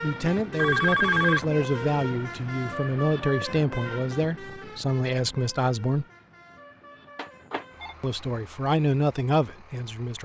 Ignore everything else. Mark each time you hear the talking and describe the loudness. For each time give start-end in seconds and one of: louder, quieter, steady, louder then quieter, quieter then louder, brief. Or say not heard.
0.0-6.0 steady
8.0-10.2 brief.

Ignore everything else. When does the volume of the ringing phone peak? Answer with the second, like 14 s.
1 s.